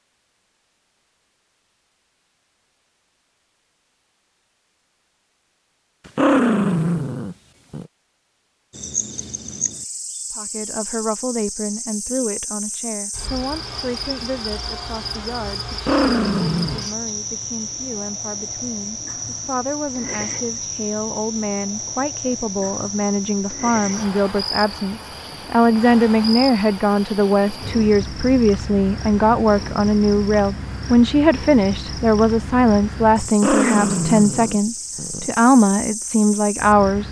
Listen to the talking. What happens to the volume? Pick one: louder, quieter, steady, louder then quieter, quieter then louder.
louder.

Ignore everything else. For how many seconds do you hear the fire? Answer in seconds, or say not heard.
not heard.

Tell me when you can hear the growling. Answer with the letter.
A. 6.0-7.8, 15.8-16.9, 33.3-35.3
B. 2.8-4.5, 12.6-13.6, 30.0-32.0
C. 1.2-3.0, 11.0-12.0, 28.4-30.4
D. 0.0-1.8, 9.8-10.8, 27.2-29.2
A.